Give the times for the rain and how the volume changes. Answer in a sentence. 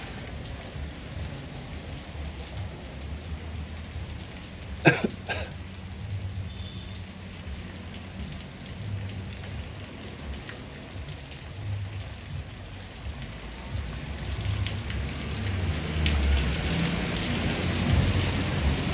You can hear the rain from 0.0 to 18.8 s, getting louder.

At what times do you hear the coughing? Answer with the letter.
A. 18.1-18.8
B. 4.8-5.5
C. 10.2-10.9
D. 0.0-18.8
B.